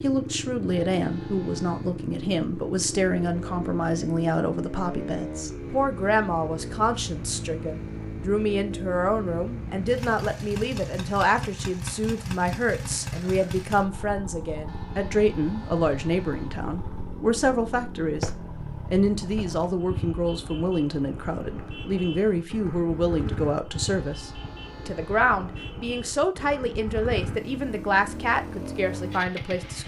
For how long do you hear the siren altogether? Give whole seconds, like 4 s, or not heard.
not heard.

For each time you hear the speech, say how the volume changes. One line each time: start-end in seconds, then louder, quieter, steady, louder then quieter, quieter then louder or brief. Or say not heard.
0.0-29.8 steady.